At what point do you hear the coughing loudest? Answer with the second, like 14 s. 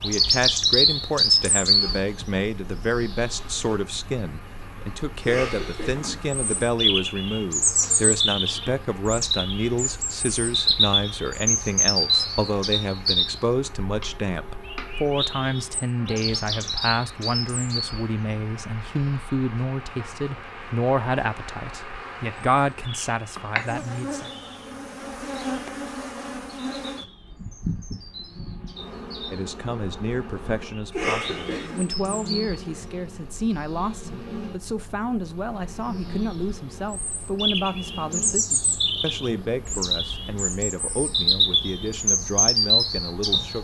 31 s.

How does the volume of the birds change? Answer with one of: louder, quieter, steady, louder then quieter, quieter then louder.
quieter then louder.